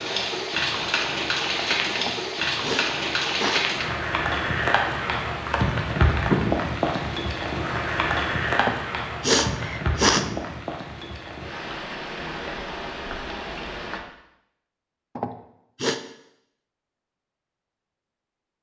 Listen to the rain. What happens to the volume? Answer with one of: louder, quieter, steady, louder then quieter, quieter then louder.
quieter.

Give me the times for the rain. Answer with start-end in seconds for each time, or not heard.
0.0-14.0.